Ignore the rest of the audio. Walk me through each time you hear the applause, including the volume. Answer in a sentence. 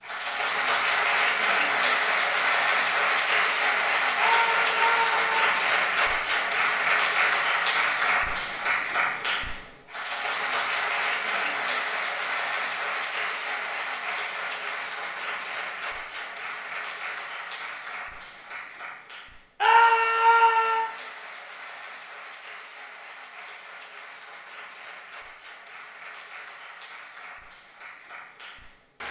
You can hear the applause from 0.0 to 29.0 s, getting quieter.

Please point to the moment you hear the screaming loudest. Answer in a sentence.
The volume of the screaming peaks at 20 seconds.